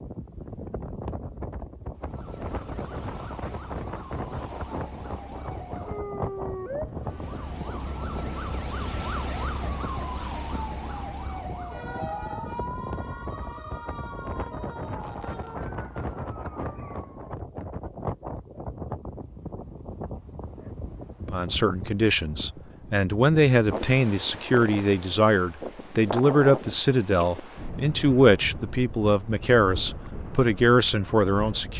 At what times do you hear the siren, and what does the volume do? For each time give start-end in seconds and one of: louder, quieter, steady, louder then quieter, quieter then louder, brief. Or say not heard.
1.9-17.4 louder then quieter.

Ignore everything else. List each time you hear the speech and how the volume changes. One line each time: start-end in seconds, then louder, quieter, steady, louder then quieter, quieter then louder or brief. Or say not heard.
21.3-31.7 steady.